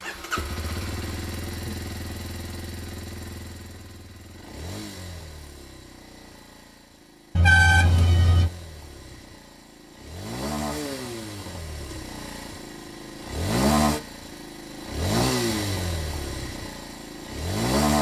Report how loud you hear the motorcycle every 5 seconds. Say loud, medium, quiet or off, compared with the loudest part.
medium, quiet, loud, loud.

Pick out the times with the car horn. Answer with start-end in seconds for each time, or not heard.
7.3-8.5.